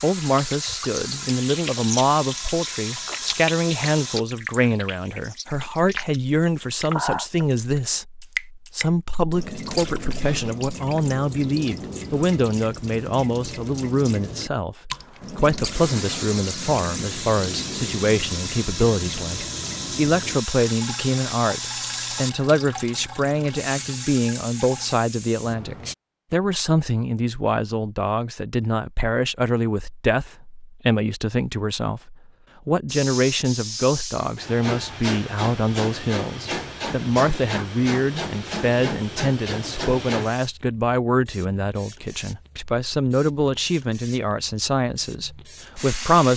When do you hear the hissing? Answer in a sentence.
The hissing can be heard from 0.0 to 4.2 s, from 15.0 to 25.9 s and from 32.9 to 46.3 s.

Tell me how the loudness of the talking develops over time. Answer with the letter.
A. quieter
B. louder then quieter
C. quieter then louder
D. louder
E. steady
E.